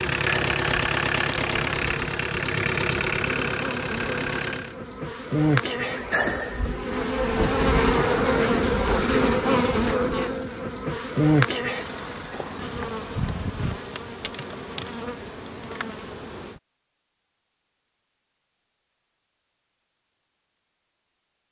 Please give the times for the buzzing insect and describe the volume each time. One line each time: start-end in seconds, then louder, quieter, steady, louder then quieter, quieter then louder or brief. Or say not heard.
0.0-16.6 louder then quieter.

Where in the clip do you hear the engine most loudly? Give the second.
1 s.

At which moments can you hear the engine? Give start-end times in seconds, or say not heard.
0.0-4.8.